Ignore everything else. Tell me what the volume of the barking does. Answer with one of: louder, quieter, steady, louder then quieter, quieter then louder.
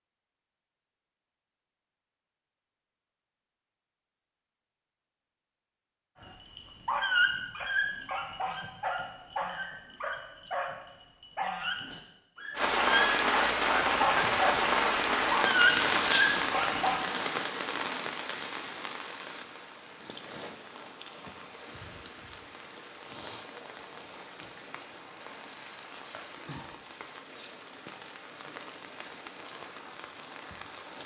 quieter then louder.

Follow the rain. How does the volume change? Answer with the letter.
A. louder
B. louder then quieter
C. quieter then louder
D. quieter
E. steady
D.